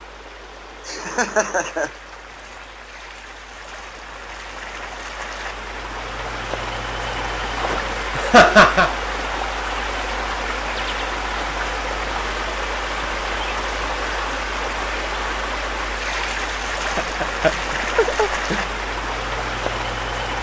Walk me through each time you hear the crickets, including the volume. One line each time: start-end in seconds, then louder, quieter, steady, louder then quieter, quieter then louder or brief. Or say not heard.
not heard.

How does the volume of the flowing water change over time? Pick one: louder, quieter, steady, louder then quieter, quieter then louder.
louder.